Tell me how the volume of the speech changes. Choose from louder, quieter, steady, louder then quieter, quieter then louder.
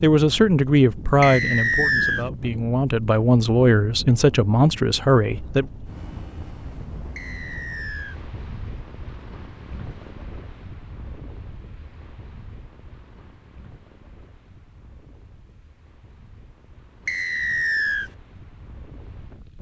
quieter then louder.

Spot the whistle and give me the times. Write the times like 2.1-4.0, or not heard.
1.2-2.2, 7.2-8.2, 17.1-18.1.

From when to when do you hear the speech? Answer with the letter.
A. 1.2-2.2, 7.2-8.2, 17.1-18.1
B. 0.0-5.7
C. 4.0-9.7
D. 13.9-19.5
B.